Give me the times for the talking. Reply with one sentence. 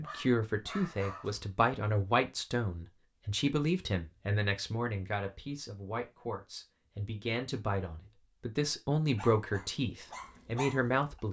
The talking can be heard from 0.0 to 11.2 s.